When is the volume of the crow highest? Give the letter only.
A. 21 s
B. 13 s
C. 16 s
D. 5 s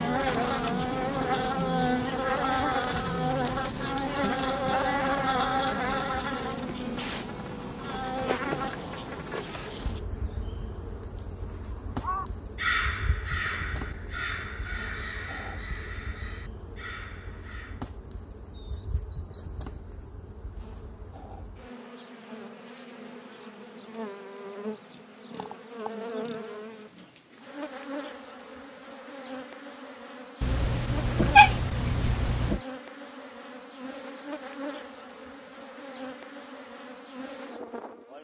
B.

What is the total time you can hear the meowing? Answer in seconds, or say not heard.
2 s.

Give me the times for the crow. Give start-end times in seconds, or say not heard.
12.0-17.9.